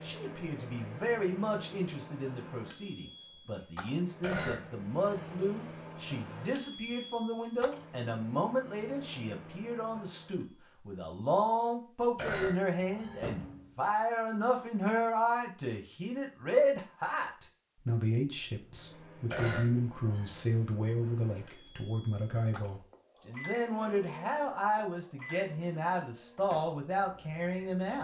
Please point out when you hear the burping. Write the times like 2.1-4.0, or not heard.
4.2-5.3, 12.2-13.2, 19.3-20.4.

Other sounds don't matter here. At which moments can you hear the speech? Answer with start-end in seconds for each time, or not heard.
0.0-27.9.